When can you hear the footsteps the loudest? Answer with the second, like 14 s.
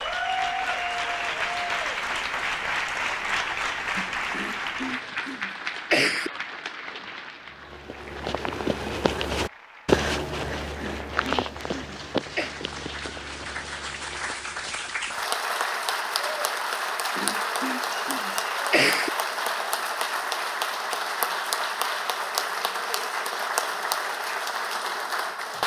10 s.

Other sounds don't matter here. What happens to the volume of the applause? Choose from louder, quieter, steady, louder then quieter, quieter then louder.
quieter then louder.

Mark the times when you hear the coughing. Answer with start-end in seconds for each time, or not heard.
4.3-6.3, 10.8-12.5, 17.1-19.1.